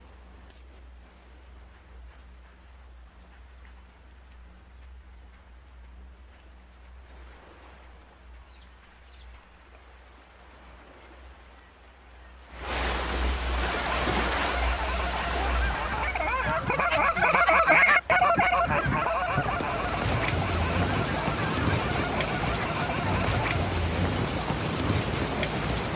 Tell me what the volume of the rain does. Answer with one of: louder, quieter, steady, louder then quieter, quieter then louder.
louder.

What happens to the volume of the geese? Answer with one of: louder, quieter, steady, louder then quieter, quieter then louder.
louder then quieter.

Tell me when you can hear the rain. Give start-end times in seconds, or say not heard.
0.0-25.9.